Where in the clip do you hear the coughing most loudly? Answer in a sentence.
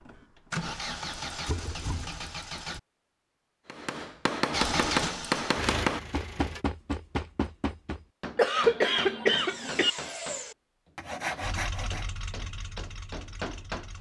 The loudest moment of the coughing is at 9 seconds.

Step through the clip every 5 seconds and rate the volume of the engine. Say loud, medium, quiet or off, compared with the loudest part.
loud, loud, medium.